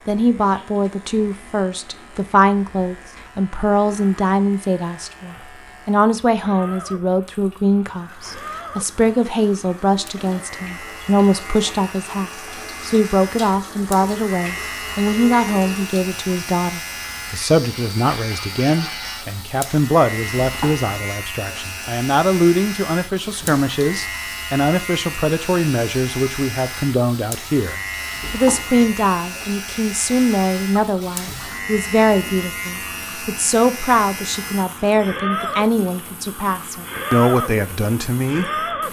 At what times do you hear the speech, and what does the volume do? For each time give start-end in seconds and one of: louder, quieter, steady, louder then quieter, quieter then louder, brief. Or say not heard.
0.1-38.5 steady.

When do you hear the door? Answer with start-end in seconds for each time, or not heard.
not heard.